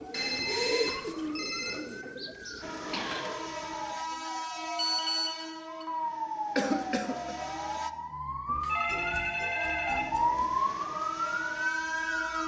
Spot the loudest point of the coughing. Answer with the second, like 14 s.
7 s.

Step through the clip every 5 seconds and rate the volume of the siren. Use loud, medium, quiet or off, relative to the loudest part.
quiet, medium, loud.